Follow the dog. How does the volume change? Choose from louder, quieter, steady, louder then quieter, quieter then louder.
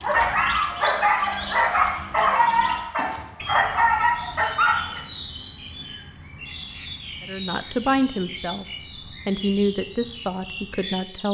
steady.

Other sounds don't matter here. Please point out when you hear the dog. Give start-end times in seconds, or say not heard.
0.0-5.0.